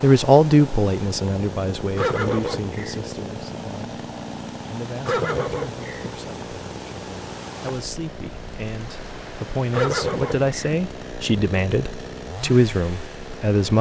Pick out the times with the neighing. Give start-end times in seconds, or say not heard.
1.9-3.0, 5.0-6.1, 9.7-10.6.